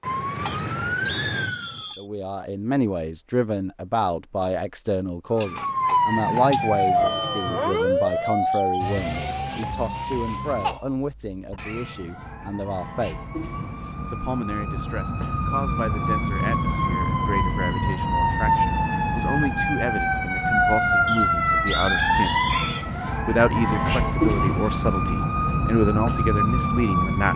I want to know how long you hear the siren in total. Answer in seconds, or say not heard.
24 s.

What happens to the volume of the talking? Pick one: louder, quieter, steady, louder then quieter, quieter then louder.
quieter then louder.